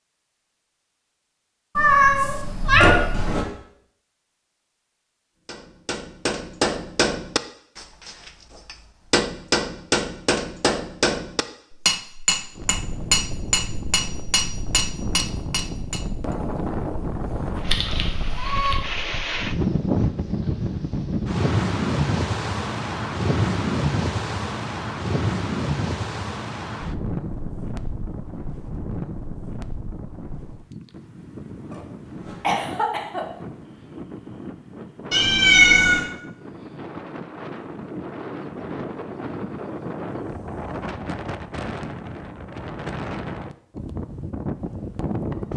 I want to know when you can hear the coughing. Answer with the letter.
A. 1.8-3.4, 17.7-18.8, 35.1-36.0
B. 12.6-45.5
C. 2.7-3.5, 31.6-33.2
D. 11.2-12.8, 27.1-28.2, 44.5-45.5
C.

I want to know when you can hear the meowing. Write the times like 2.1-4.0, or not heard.
1.8-3.4, 17.7-18.8, 35.1-36.0.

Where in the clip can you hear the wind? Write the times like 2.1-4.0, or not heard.
12.6-45.5.